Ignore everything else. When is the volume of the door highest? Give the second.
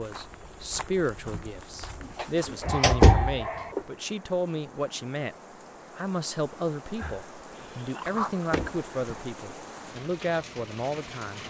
3 s.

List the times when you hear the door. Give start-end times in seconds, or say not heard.
2.0-3.8, 8.5-9.2.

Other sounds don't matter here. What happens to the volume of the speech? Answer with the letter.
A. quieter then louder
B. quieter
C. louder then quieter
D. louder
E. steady
E.